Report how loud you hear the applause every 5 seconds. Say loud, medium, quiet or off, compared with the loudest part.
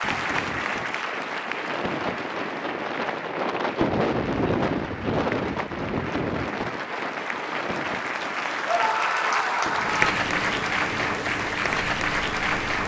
medium, medium, loud.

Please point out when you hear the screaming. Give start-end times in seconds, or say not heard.
8.7-10.2.